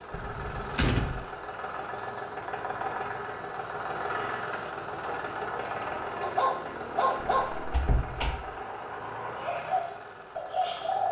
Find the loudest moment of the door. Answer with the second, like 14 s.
1 s.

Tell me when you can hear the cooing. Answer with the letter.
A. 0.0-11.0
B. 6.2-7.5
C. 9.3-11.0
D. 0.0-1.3
C.